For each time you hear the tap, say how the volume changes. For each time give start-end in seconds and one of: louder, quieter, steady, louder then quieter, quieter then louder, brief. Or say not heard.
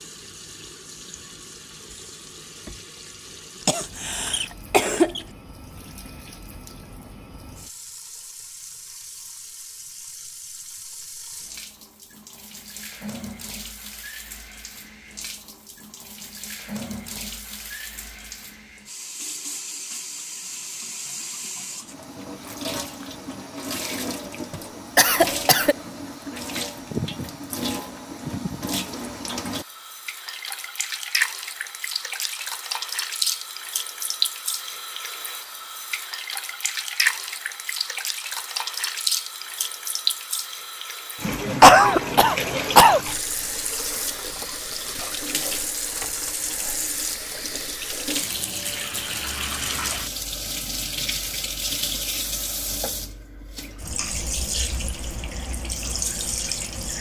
0.0-56.9 louder.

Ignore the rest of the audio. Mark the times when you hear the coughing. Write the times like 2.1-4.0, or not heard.
3.6-5.2, 24.5-25.8, 41.6-43.0.